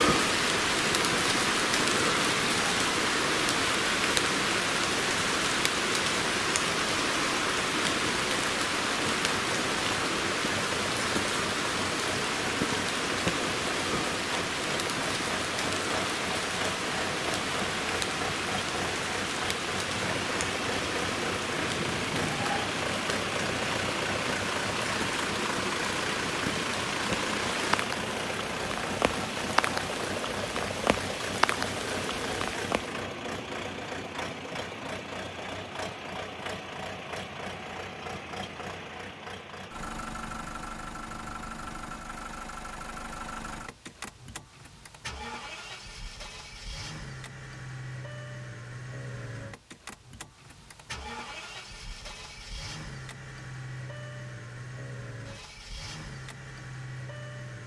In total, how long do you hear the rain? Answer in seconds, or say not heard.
33 s.